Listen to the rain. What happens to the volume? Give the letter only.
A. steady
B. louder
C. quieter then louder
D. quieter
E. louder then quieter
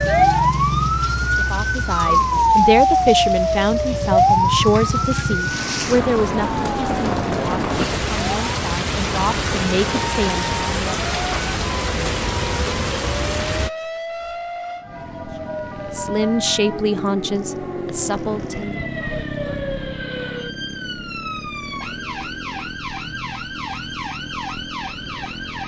B.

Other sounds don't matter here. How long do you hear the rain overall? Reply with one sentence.
You can hear the rain for 14 seconds altogether.